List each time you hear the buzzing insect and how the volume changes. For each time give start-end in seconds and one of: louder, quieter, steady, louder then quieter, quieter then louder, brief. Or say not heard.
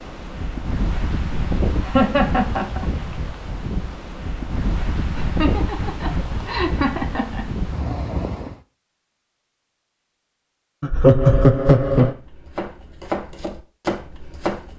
not heard.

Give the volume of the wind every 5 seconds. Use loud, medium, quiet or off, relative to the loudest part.
loud, loud, off.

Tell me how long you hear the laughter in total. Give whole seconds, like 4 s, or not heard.
5 s.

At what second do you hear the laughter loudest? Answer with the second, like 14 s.
11 s.